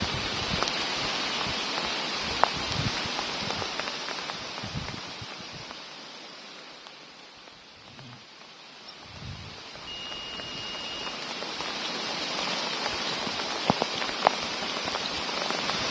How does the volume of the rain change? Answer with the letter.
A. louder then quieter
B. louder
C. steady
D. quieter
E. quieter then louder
E.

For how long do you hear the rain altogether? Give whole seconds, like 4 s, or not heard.
16 s.